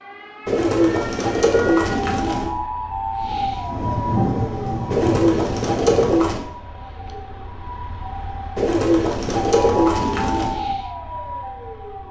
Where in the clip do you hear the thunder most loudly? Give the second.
4 s.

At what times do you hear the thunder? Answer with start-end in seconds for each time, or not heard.
3.5-6.1.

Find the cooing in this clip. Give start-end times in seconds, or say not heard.
0.5-2.5, 4.9-6.5, 8.6-10.6.